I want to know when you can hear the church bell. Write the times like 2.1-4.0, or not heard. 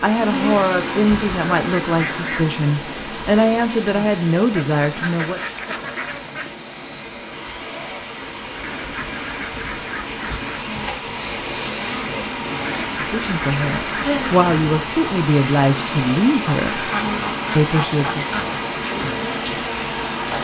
not heard.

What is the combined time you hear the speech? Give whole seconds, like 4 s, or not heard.
10 s.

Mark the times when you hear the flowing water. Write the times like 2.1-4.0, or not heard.
0.0-20.4.